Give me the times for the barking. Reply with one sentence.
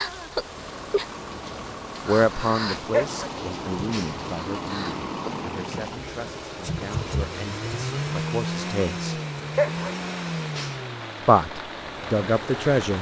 The barking can be heard from 2.9 to 4.1 s and from 9.6 to 10.8 s.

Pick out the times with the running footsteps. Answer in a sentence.
You can't hear the running footsteps here.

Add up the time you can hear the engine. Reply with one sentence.
The engine can be heard for 13 seconds in total.